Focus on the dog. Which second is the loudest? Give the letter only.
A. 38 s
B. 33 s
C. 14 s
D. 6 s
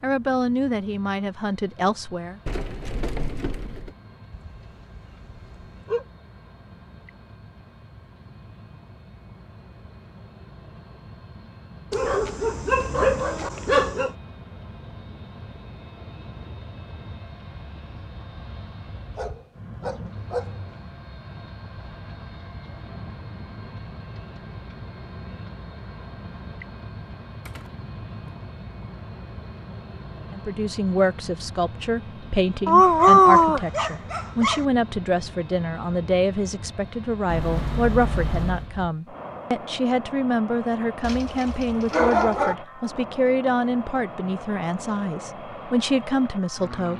B.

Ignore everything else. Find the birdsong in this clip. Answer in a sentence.
You can't hear the birdsong here.